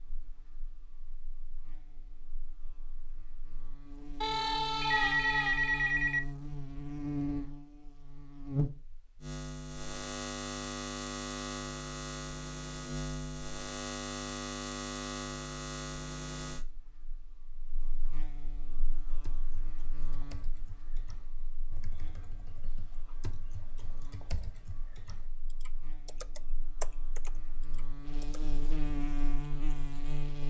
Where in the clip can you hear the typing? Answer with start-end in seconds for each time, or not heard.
18.7-28.4.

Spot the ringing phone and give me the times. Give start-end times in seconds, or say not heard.
4.2-6.2.